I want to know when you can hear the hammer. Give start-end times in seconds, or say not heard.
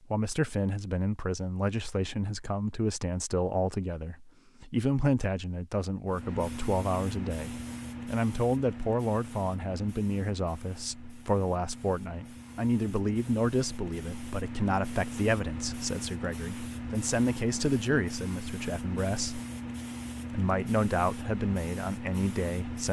not heard.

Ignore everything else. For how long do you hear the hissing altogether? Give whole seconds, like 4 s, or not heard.
17 s.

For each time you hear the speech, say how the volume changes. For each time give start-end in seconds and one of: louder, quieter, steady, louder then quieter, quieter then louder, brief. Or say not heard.
0.1-19.4 steady
20.3-22.8 brief.